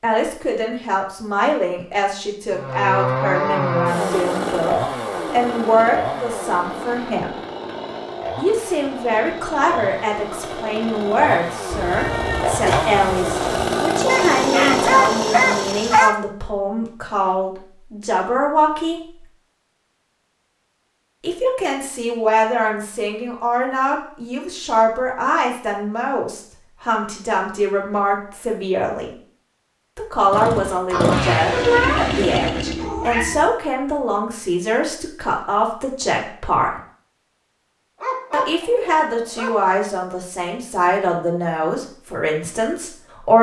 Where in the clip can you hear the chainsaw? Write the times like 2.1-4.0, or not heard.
2.5-16.0, 30.3-33.0.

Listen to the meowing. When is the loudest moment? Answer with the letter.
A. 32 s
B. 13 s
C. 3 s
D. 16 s
A.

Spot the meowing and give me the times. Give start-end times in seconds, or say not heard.
11.7-13.7, 30.9-33.5.